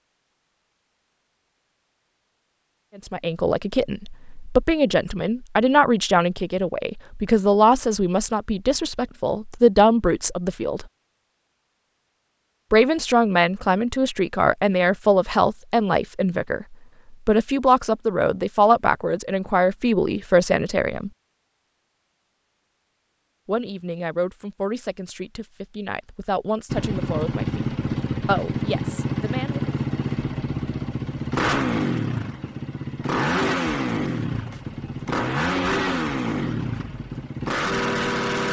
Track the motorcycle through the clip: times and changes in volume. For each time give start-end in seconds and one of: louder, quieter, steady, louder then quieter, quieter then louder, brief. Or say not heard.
26.6-38.4 steady.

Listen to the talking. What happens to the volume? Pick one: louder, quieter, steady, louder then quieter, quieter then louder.
quieter.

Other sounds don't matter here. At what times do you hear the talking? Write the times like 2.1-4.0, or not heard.
3.0-10.8, 12.7-21.1, 23.4-29.7.